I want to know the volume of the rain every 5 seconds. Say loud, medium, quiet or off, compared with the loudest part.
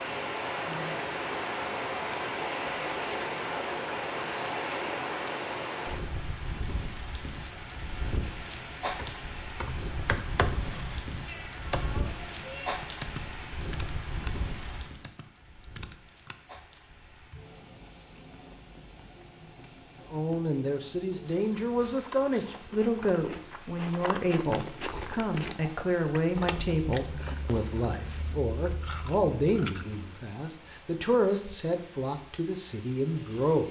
loud, medium, medium, quiet, quiet, quiet, quiet.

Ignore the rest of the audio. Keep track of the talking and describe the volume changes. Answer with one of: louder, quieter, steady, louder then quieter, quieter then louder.
steady.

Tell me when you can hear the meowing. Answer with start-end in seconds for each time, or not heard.
11.2-12.8.